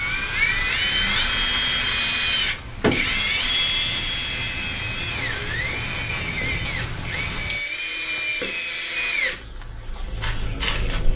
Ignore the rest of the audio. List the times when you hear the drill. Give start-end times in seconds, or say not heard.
0.0-11.1.